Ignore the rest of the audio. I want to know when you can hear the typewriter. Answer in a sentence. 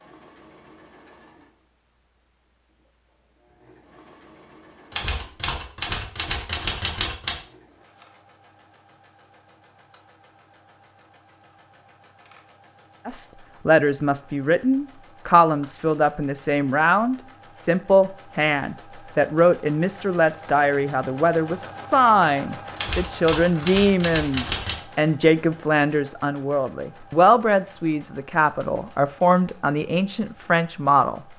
You can hear the typewriter from 4.9 to 7.4 s and from 22.8 to 24.8 s.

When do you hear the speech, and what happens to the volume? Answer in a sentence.
The speech can be heard from 13.1 to 31.2 s, at a steady volume.